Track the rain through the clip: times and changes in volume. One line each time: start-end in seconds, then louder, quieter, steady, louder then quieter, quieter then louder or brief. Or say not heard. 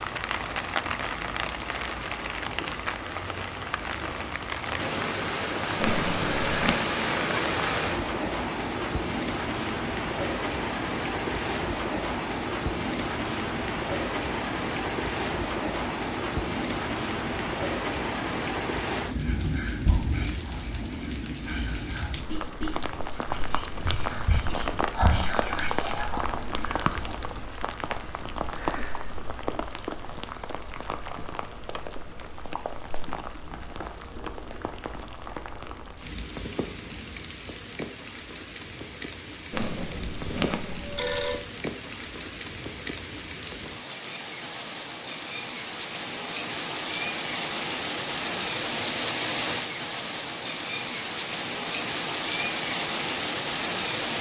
0.0-54.1 quieter then louder.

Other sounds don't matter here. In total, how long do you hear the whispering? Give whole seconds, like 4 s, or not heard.
8 s.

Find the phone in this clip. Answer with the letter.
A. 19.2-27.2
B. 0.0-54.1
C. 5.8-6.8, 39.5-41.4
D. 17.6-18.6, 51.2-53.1
C.